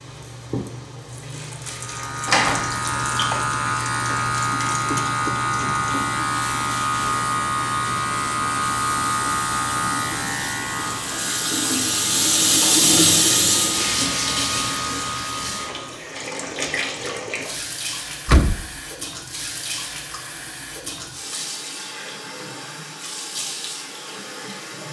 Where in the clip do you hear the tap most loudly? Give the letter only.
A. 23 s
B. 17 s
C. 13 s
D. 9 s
C.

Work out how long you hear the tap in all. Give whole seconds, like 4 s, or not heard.
25 s.